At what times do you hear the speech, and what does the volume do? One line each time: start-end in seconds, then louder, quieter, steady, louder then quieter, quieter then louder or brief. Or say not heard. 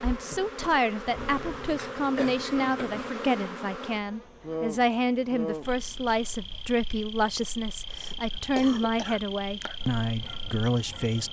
0.0-11.2 steady.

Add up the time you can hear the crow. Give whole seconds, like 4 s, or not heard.
not heard.